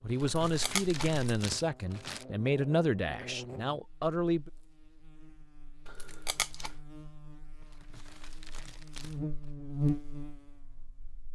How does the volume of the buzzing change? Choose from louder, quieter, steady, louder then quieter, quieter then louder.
quieter then louder.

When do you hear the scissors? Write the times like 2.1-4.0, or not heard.
0.2-1.4, 5.8-6.8.